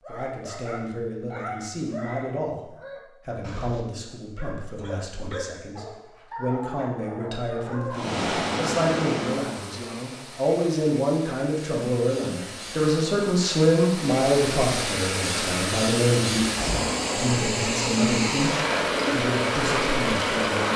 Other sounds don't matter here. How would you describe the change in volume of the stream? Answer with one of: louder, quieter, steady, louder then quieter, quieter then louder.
quieter then louder.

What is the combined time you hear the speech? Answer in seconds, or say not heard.
21 s.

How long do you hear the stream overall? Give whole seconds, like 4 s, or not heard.
13 s.